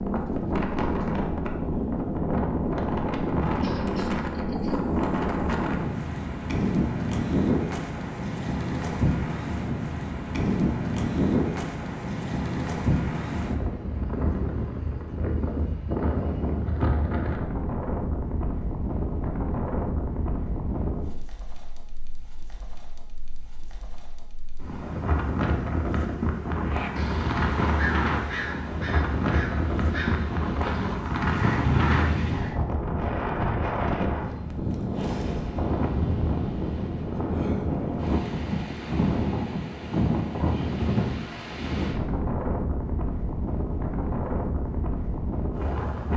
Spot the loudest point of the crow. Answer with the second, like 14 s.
32 s.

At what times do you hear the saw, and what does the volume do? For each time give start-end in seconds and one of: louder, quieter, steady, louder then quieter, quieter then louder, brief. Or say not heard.
not heard.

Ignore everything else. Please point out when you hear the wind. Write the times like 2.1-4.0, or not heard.
0.0-46.1.